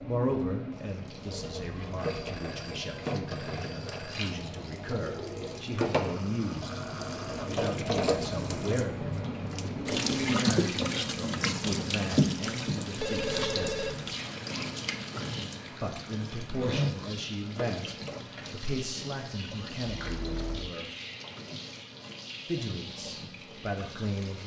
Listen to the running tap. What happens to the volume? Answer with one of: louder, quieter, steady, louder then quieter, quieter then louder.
louder then quieter.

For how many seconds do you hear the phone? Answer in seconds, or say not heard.
4 s.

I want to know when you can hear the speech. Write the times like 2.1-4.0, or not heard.
0.0-14.1, 15.7-20.9, 22.4-24.4.